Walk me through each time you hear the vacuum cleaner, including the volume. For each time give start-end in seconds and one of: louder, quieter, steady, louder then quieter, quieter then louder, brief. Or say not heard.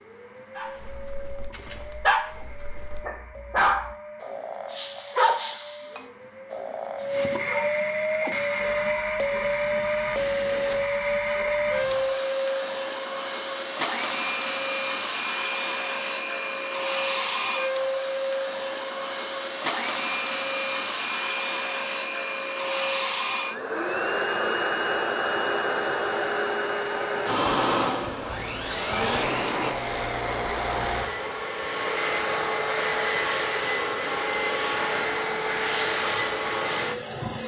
0.0-37.4 louder.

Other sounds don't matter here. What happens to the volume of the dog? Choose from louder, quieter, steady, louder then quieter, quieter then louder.
quieter.